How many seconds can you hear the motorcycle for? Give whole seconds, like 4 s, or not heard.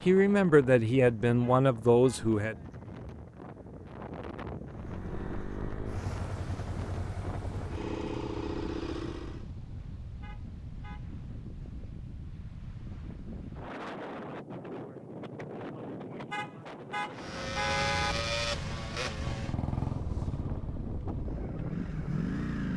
10 s.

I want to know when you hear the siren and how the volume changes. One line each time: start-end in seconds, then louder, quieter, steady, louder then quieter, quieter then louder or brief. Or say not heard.
not heard.